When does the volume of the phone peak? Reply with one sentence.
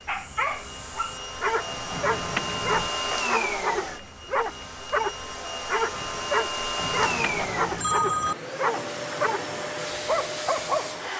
The loudest moment of the phone is at 8 seconds.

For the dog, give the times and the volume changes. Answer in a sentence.
The dog can be heard from 0.1 to 9.4 s, at a steady volume; and briefly from 10.1 to 10.9 s.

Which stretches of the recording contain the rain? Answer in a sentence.
The rain can't be heard in this clip.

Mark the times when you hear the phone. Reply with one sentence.
You can hear the phone from 1.9 to 2.9 s and from 6.8 to 8.3 s.